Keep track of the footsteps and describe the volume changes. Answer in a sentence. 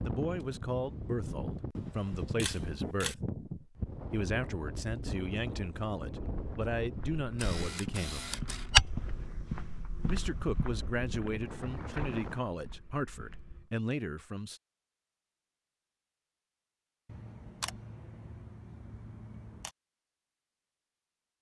The loudness of the footsteps goes up, then down.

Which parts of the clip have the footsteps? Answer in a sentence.
The footsteps can be heard from 6.3 to 13.7 s.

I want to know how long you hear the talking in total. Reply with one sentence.
The talking can be heard for 13 seconds in total.